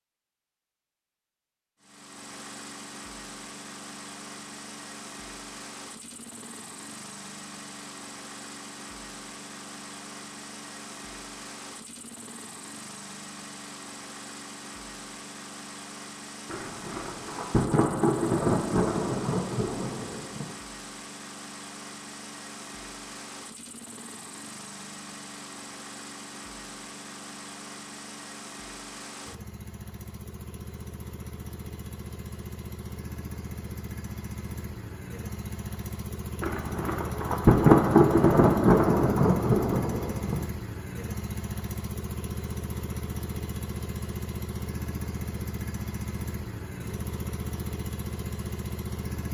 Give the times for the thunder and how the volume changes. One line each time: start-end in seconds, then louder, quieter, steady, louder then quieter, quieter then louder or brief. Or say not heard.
16.4-20.5 louder then quieter
36.4-40.5 louder then quieter.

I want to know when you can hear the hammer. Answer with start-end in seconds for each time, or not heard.
not heard.